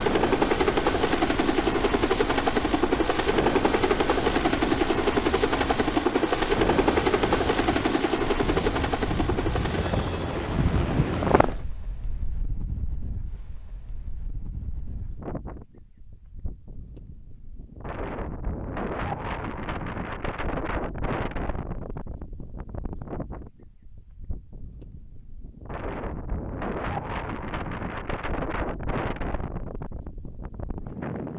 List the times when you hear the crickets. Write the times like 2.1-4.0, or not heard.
not heard.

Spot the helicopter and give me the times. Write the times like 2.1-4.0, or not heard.
0.0-11.7.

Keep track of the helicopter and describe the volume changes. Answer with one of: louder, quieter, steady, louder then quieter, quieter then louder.
quieter.